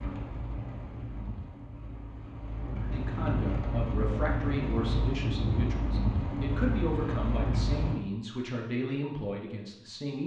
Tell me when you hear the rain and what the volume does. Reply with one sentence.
You can hear the rain from 0.0 to 8.0 s, getting louder.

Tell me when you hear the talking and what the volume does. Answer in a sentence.
You can hear the talking from 2.6 to 10.2 s, at a steady volume.